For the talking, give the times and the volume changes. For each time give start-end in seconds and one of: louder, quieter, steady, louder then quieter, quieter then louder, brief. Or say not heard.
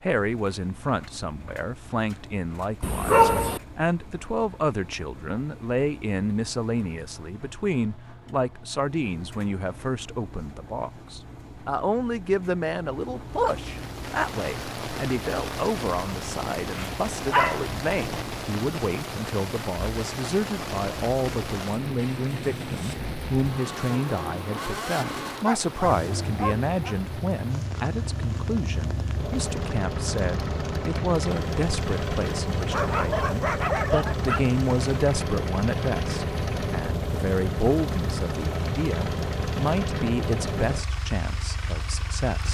0.0-42.4 steady.